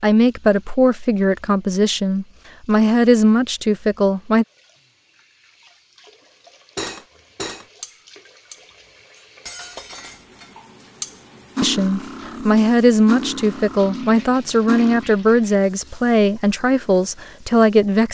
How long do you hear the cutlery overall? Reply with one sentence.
You can hear the cutlery for 8 seconds altogether.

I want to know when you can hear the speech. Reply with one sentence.
The speech can be heard from 0.0 to 4.5 s and from 11.6 to 18.0 s.